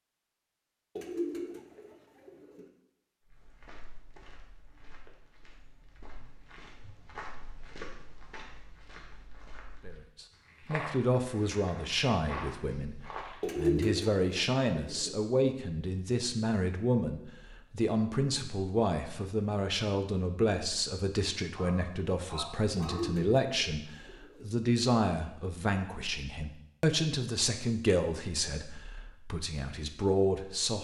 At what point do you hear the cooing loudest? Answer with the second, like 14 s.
14 s.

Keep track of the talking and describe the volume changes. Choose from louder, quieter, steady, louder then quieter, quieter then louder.
steady.